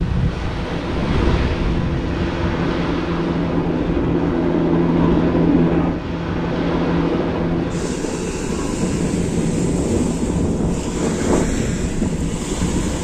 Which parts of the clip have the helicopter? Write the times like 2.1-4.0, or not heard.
0.2-8.0.